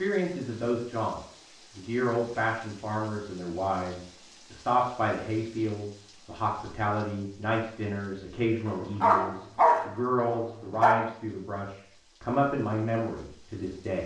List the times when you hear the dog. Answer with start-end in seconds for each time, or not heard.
8.7-10.9.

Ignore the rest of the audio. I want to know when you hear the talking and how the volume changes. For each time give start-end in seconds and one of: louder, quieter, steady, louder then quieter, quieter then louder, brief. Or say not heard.
0.0-14.0 steady.